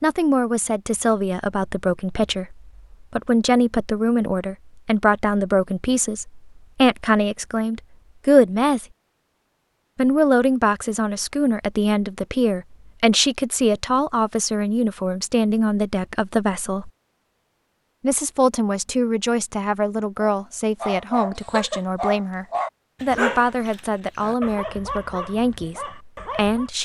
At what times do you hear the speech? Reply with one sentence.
You can hear the speech from 0.0 to 8.8 s, from 9.9 to 16.9 s and from 18.0 to 26.8 s.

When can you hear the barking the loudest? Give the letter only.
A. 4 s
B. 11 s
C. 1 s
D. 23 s
D.